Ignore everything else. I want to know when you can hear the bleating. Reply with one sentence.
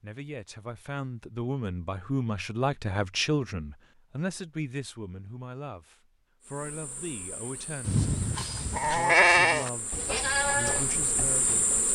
You can hear the bleating from 7.8 to 11.8 s.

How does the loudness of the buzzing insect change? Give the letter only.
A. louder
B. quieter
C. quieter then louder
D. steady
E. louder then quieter
A.